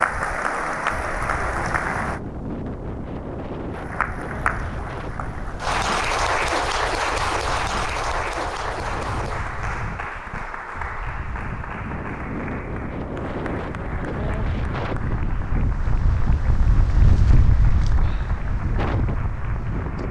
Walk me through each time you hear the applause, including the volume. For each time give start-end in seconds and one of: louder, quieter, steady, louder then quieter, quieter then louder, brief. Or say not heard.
0.0-2.2 brief
3.7-20.0 quieter.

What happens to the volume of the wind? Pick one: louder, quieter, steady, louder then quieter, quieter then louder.
quieter then louder.